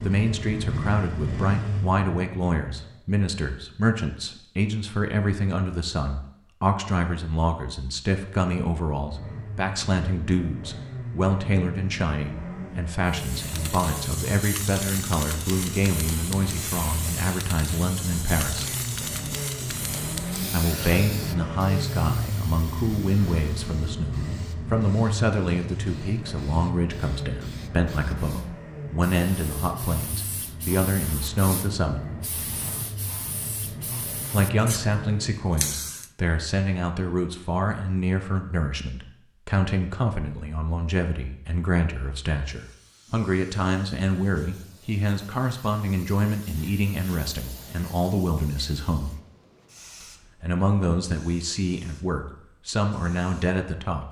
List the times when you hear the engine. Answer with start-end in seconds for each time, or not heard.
0.0-3.0, 9.0-35.5.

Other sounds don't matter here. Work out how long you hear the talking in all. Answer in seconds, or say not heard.
49 s.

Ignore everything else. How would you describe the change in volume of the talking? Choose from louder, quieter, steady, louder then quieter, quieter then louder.
steady.